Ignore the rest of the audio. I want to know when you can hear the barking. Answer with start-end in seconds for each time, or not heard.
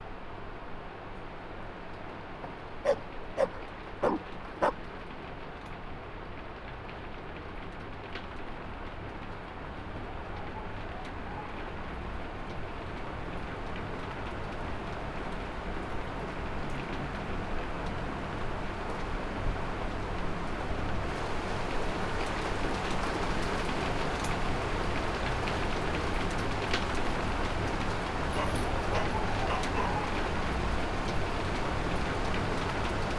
2.4-4.8, 28.2-30.1.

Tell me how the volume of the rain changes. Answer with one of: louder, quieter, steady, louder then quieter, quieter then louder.
louder.